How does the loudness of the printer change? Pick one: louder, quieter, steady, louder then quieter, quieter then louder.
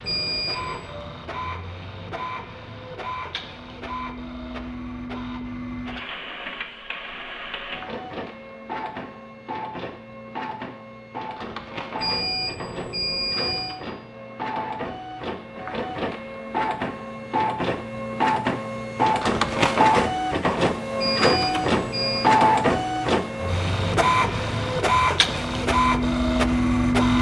louder.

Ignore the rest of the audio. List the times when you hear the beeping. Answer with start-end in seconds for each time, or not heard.
0.0-0.8, 11.9-13.8, 20.9-22.3.